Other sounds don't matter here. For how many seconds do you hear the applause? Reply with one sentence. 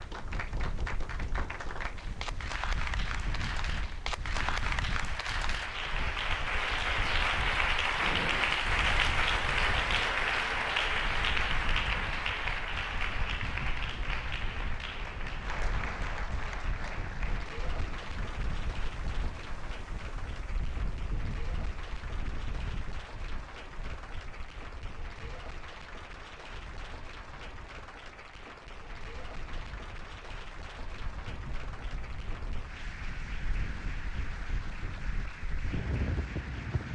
The applause can be heard for 37 seconds in total.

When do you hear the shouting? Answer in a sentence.
The shouting can't be heard in this clip.